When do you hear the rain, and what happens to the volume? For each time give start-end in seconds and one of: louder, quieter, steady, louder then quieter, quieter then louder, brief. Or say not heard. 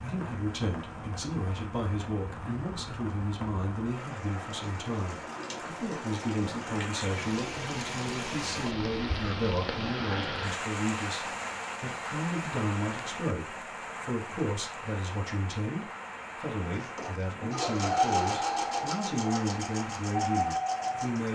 0.0-21.3 louder then quieter.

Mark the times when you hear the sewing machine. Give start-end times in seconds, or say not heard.
16.6-21.3.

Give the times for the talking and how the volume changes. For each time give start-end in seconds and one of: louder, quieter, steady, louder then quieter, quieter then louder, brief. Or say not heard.
0.0-21.3 steady.